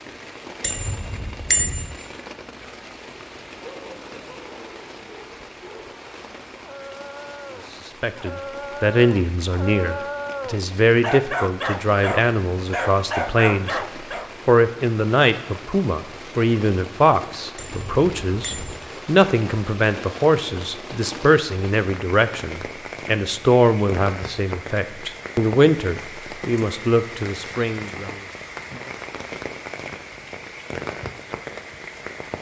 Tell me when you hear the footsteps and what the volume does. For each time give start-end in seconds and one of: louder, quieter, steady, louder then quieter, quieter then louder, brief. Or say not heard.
not heard.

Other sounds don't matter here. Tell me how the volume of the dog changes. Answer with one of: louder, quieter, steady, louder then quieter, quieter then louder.
louder.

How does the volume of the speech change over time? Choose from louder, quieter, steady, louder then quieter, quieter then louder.
steady.